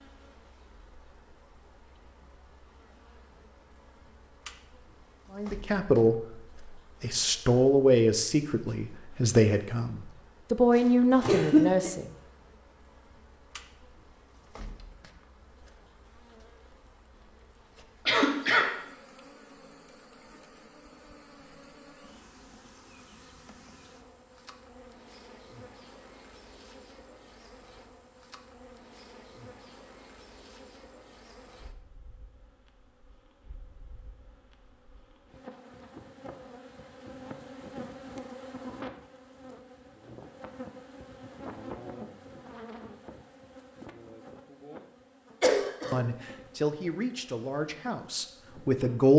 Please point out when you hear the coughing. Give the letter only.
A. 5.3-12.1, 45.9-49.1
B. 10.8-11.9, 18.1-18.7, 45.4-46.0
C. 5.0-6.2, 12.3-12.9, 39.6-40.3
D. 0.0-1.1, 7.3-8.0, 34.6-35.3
B.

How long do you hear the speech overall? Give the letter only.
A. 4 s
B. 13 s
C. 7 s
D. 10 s
D.